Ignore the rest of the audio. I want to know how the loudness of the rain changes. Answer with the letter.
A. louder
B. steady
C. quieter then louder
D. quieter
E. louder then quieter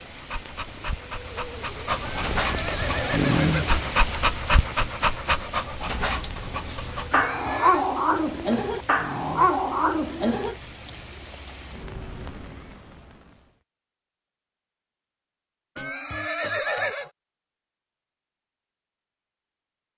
E.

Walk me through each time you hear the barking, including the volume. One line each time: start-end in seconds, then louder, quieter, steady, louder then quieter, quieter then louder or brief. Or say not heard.
0.1-10.6 louder.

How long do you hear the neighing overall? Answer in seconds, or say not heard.
4 s.